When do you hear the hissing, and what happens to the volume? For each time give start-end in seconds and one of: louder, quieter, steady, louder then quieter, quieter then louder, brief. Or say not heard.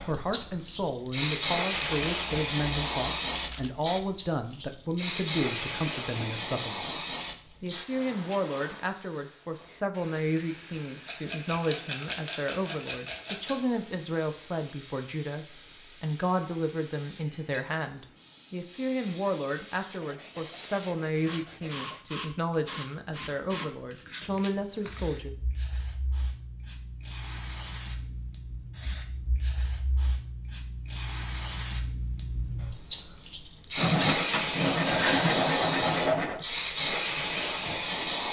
0.0-38.2 quieter then louder.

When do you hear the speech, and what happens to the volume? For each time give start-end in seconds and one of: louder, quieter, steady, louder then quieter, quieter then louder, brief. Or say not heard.
0.0-25.4 steady.